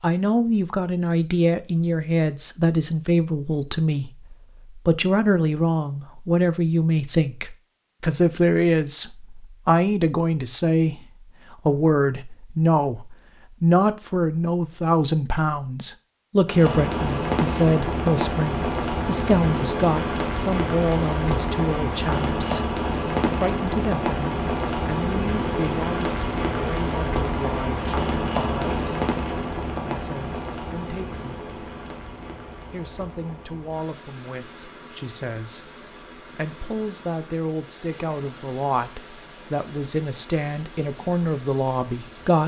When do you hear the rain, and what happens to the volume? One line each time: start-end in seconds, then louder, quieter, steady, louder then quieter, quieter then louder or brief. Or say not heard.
16.4-42.4 quieter.